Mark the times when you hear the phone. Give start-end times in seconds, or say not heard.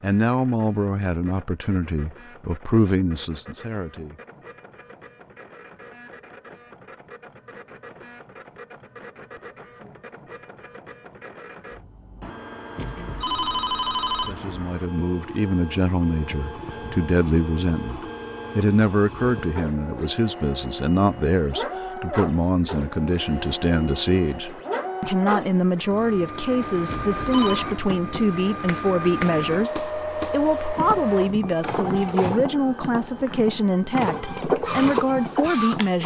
12.8-14.3, 26.9-27.6.